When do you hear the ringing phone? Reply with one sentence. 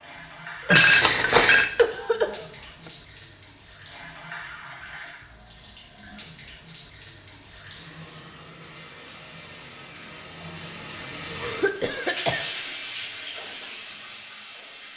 You can hear the ringing phone from 0.7 to 1.7 s.